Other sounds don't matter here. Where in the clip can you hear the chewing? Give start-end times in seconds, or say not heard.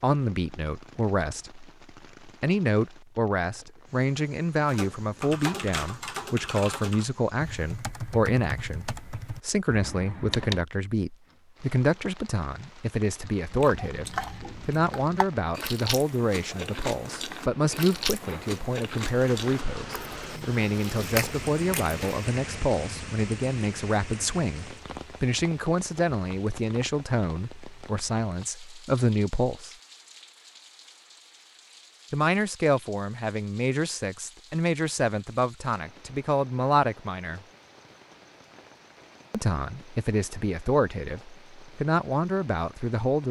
13.5-22.4.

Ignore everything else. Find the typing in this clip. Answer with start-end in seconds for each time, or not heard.
4.7-10.7.